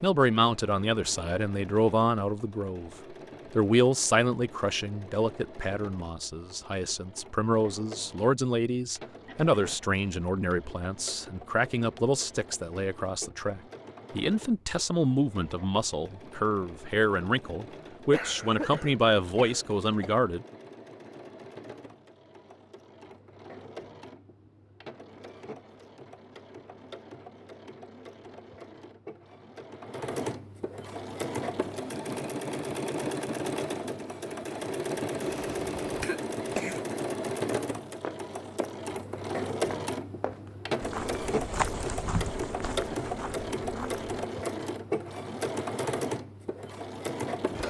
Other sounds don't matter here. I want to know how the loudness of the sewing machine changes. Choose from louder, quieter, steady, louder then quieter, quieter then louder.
louder.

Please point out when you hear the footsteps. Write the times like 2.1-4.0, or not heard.
37.5-44.0.